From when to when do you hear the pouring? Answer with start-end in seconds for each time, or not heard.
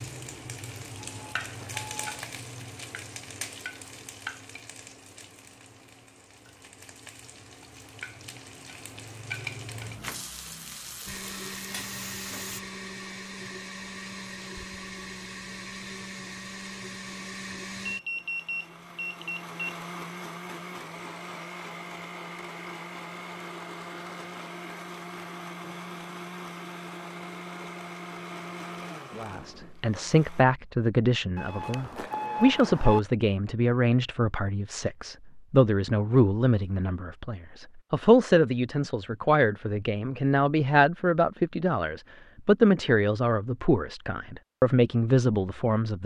not heard.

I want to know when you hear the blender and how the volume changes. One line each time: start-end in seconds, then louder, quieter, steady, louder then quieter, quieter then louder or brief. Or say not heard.
11.1-30.4 steady.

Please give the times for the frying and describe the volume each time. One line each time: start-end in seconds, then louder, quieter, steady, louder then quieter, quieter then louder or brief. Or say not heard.
0.0-12.6 quieter then louder.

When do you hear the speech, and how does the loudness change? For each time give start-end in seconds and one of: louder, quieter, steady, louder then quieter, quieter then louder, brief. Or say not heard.
29.1-46.0 steady.